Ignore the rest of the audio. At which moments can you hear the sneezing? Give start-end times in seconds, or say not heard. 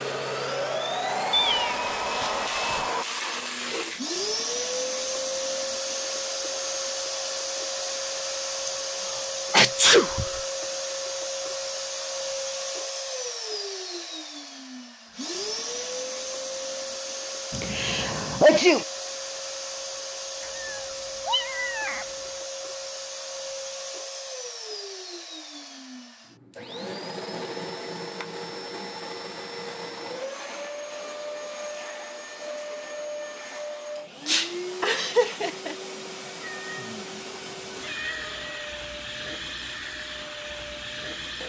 8.7-10.4, 17.5-18.9, 34.2-35.8.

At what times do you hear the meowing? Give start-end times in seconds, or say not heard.
1.3-2.9, 20.4-22.1, 36.4-38.8.